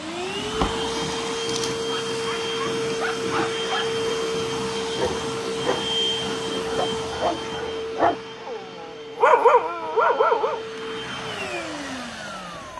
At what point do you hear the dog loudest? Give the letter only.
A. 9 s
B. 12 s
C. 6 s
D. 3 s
A.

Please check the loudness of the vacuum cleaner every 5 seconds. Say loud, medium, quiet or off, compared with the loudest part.
loud, loud, medium.